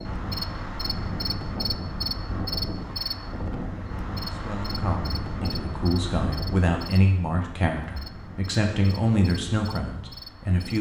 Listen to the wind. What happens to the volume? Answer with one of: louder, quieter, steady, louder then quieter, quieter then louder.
quieter.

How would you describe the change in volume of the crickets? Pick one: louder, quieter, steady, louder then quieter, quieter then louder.
quieter.